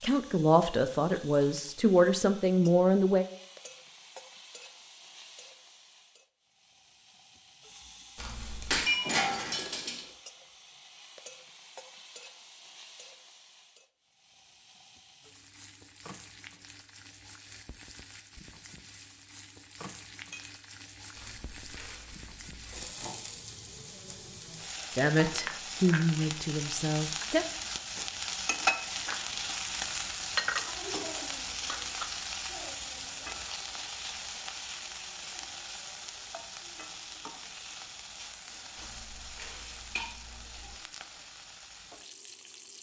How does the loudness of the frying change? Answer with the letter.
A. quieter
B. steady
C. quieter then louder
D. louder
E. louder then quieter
E.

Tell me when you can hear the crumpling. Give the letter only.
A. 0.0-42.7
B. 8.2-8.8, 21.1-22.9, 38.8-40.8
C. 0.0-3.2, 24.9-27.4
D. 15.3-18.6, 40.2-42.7
B.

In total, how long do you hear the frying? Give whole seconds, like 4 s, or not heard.
43 s.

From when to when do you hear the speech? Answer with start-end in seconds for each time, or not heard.
0.0-3.2, 24.9-27.4.